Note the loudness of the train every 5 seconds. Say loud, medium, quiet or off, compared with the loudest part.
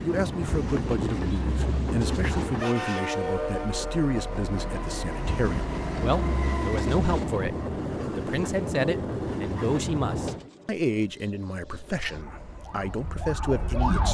loud, loud, medium.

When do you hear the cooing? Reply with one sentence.
The cooing can be heard from 0.5 to 2.5 s, from 5.2 to 7.2 s and from 10.2 to 12.2 s.